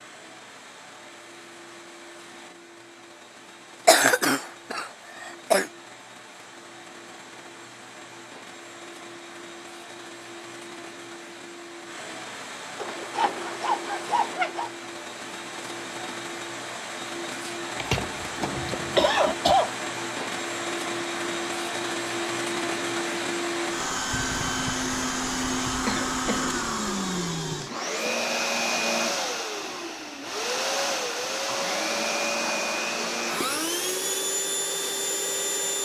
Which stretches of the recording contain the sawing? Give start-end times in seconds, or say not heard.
12.8-14.7.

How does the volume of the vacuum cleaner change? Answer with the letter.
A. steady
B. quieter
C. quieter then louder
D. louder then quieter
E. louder
E.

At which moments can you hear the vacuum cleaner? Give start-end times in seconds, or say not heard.
0.0-35.8.